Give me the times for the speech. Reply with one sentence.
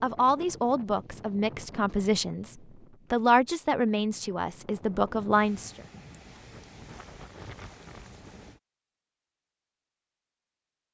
The speech can be heard from 0.0 to 5.8 s.